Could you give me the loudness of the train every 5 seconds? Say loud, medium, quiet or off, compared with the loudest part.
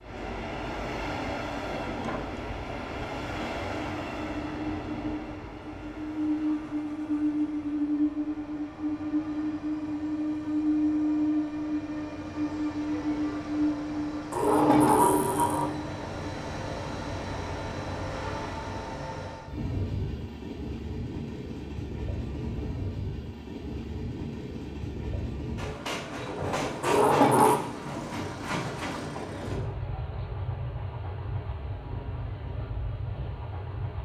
medium, loud, loud, medium, medium, medium, medium.